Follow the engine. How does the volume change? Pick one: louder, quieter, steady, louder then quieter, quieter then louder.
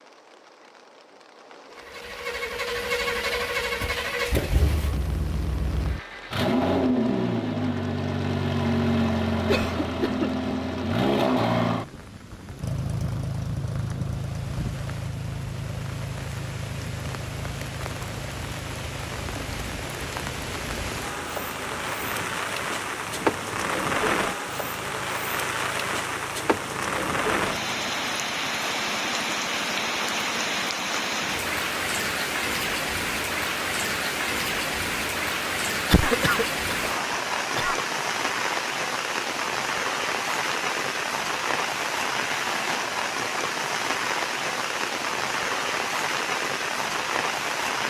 quieter.